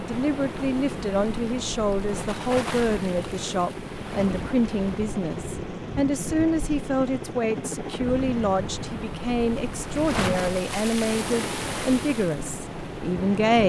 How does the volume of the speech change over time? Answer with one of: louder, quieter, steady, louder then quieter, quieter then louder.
steady.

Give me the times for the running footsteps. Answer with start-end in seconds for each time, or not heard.
not heard.